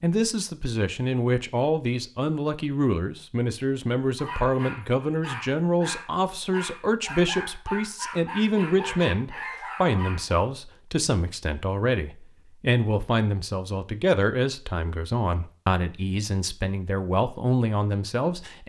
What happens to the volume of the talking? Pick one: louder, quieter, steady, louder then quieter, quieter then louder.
steady.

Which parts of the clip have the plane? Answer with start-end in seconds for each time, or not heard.
not heard.